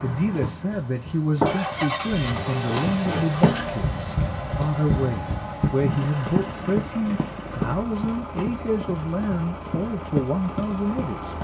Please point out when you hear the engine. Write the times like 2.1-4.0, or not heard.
0.0-11.3.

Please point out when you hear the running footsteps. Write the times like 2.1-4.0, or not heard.
0.2-11.3.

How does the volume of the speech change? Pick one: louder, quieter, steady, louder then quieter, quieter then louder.
steady.